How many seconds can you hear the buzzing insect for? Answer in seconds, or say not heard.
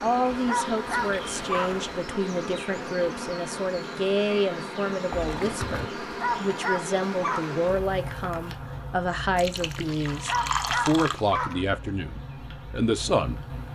14 s.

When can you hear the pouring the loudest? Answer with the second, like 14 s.
11 s.